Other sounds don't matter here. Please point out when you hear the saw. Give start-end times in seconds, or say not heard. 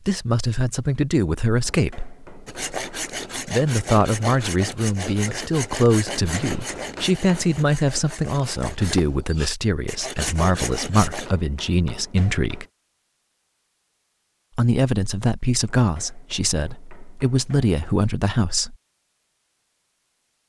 2.5-11.3.